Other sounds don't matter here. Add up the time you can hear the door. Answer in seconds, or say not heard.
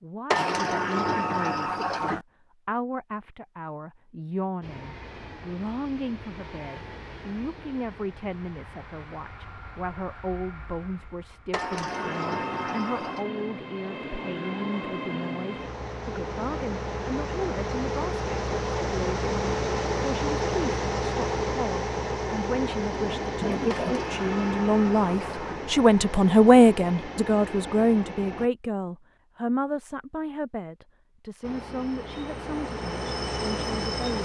6 s.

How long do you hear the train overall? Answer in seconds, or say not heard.
27 s.